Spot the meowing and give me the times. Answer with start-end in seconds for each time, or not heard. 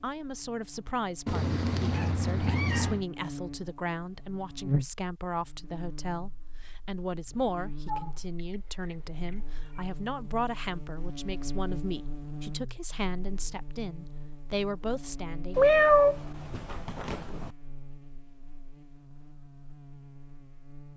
1.2-3.0, 7.8-9.8, 15.6-17.5.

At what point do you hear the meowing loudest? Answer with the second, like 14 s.
16 s.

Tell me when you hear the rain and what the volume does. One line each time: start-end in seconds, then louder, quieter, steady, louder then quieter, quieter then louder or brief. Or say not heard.
not heard.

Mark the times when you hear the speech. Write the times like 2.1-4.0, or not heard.
0.0-15.8.